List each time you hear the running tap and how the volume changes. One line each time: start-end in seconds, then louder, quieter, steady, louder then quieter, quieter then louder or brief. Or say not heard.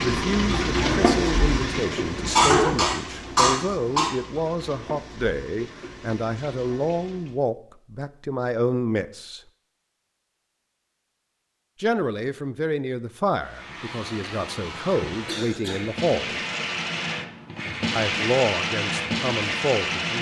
0.0-7.4 quieter
13.3-20.1 louder.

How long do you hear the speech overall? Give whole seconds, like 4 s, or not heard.
16 s.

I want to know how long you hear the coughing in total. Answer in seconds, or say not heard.
2 s.